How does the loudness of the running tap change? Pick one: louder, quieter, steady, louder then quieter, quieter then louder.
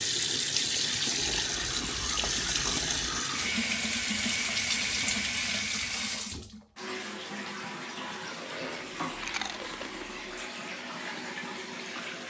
quieter.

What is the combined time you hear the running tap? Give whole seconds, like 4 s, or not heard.
12 s.